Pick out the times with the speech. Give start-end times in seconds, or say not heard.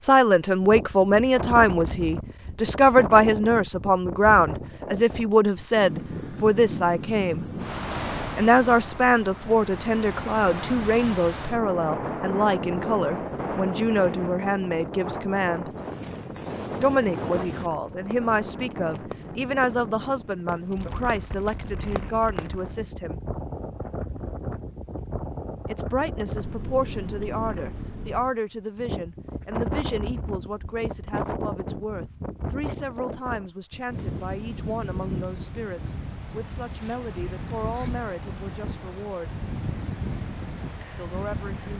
0.0-7.5, 8.3-15.7, 16.8-23.2, 25.6-39.3, 41.0-41.7.